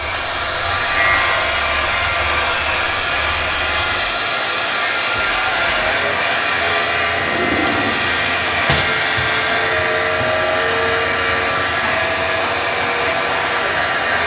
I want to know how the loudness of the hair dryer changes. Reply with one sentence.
The loudness of the hair dryer stays about the same.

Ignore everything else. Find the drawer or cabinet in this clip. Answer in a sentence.
The drawer or cabinet can be heard from 7.2 to 8.9 s.